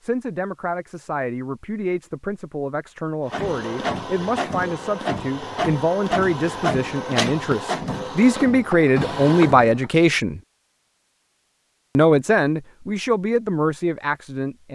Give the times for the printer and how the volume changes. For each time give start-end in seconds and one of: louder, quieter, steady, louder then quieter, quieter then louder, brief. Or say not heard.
3.2-9.9 steady.